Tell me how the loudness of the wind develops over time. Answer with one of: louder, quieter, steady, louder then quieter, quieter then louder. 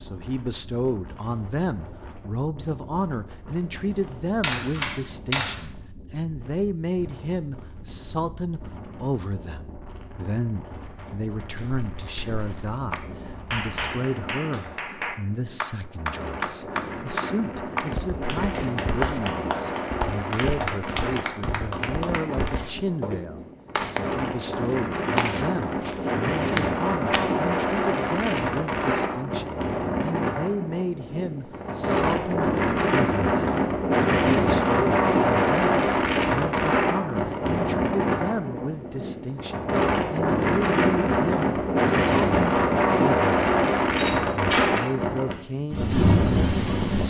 louder.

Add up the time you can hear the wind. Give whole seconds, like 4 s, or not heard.
47 s.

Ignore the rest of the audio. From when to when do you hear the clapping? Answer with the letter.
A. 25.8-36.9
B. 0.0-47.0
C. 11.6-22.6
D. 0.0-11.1
C.